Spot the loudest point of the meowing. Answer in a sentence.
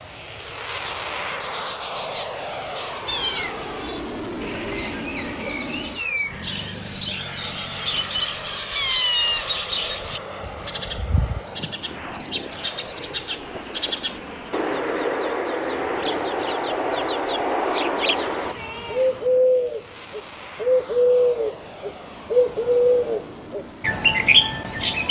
The volume of the meowing peaks at 9 seconds.